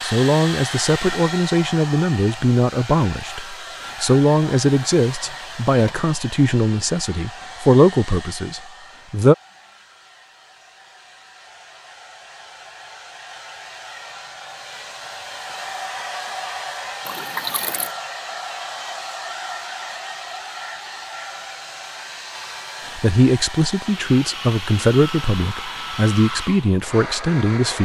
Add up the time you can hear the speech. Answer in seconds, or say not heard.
14 s.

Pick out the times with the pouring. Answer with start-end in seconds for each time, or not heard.
17.1-17.9.